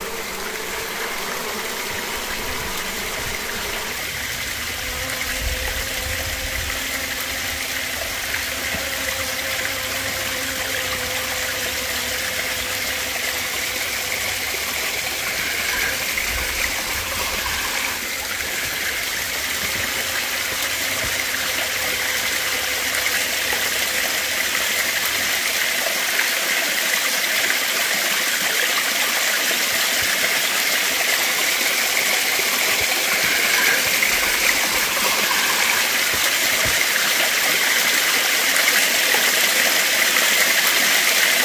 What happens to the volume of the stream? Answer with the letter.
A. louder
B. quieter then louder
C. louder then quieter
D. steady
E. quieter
A.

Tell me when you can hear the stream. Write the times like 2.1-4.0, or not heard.
0.0-41.4.